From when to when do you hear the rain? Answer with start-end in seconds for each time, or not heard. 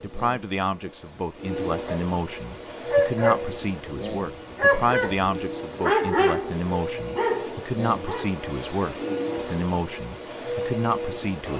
not heard.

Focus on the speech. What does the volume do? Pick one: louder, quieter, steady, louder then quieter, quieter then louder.
steady.